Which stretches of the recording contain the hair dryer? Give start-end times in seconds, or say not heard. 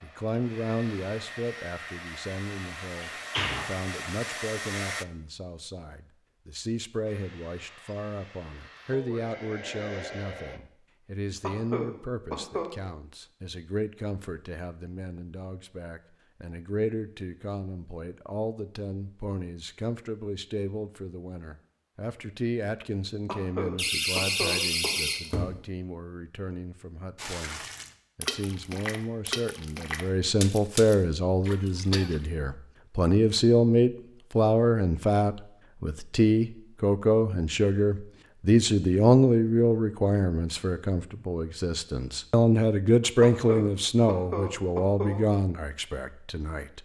0.0-5.0, 7.0-10.6.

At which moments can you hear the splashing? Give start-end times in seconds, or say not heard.
27.1-32.2.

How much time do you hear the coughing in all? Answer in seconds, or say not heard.
5 s.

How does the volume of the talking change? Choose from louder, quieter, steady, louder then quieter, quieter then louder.
louder.